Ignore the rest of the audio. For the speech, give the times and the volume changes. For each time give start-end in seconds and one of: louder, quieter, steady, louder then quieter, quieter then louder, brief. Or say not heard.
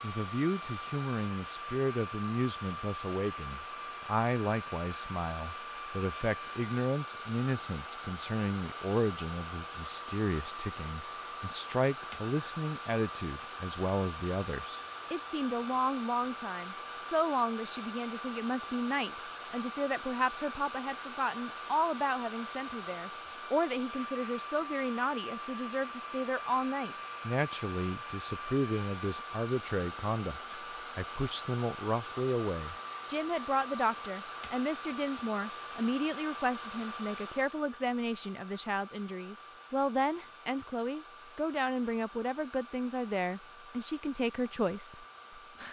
0.0-45.6 steady.